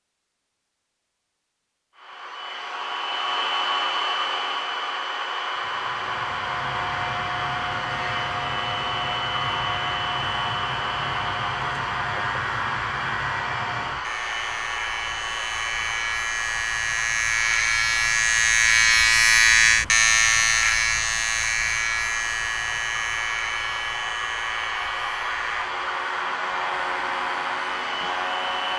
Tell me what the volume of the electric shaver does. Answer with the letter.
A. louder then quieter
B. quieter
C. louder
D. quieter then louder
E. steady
A.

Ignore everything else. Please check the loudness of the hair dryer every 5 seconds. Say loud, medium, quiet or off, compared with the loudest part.
loud, loud, loud, medium, medium, loud.